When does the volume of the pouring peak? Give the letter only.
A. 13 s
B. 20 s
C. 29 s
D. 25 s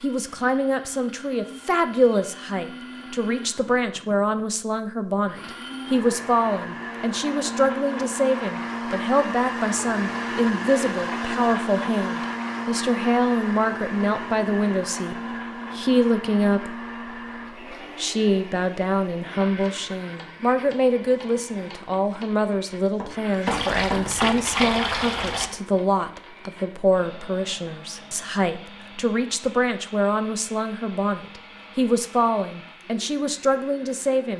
D.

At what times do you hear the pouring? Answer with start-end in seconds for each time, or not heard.
23.4-25.5.